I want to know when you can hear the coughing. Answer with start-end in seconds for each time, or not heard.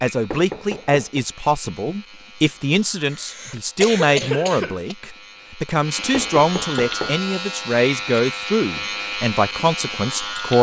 3.1-5.0.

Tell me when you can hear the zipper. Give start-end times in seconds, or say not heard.
not heard.